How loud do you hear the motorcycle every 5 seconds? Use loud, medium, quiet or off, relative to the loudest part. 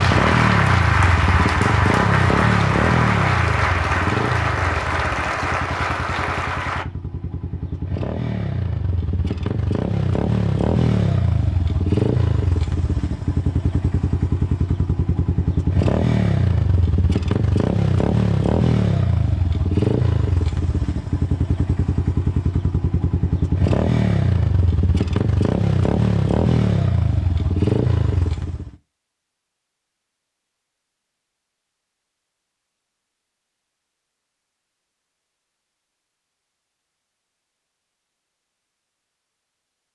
loud, medium, loud, loud, loud, loud, off, off.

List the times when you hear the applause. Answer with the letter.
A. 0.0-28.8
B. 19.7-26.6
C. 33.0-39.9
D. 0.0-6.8
D.